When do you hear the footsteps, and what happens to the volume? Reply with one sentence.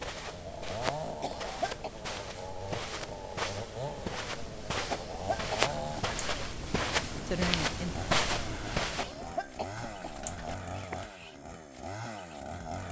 You can hear the footsteps from 0.0 to 9.2 s, getting louder.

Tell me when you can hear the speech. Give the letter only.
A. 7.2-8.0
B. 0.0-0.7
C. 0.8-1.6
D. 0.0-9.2
A.